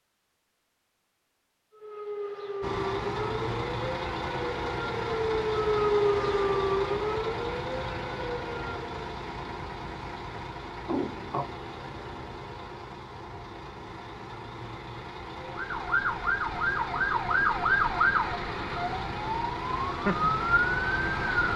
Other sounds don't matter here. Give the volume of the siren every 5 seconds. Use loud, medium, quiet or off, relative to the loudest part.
medium, loud, off, loud, loud.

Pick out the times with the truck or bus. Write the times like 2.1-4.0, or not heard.
2.6-21.5.